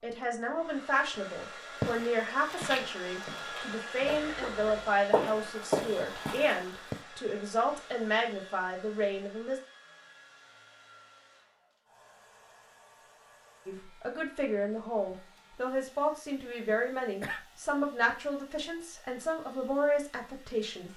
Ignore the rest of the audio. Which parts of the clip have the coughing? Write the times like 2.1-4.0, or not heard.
4.0-4.9, 17.2-17.9.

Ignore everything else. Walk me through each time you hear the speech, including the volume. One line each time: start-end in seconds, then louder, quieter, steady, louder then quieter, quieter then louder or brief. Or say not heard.
0.0-9.6 steady
13.7-20.9 steady.